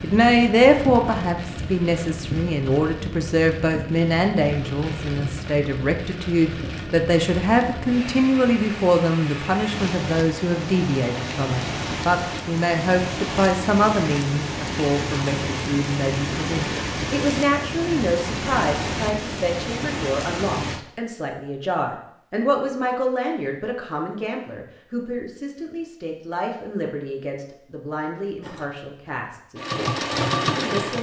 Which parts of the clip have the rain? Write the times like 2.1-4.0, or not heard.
0.0-20.8.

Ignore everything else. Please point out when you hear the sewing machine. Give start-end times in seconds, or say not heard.
28.4-30.9.